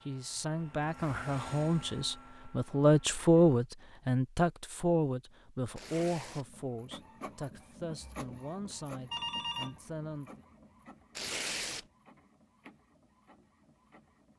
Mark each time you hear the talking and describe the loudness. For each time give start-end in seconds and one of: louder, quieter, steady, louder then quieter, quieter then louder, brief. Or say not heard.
0.1-10.4 louder then quieter.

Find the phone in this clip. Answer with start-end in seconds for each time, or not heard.
9.1-9.8.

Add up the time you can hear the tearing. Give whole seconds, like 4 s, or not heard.
2 s.